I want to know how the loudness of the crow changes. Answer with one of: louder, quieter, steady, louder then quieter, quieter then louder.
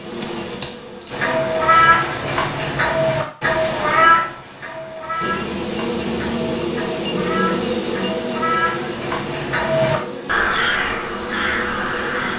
quieter then louder.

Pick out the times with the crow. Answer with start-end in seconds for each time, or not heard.
1.1-12.3.